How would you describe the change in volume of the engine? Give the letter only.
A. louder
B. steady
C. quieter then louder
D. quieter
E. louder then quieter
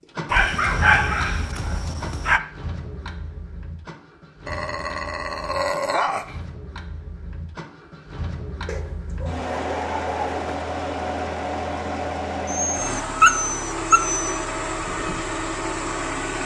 C.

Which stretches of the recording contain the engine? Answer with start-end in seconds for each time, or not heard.
0.0-16.4.